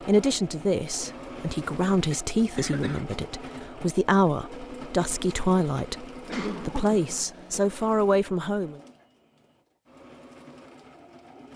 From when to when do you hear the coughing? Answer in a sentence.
The coughing can be heard from 2.1 to 3.0 s and from 6.2 to 7.6 s.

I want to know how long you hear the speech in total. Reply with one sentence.
You can hear the speech for 9 seconds altogether.